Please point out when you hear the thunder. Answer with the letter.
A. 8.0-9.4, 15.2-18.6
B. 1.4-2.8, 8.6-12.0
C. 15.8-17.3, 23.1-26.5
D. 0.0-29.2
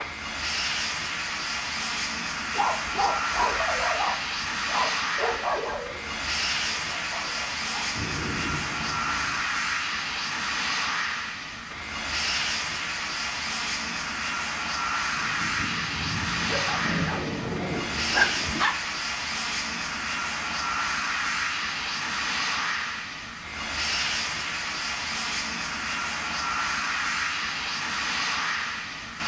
A.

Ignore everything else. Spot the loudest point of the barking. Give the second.
18 s.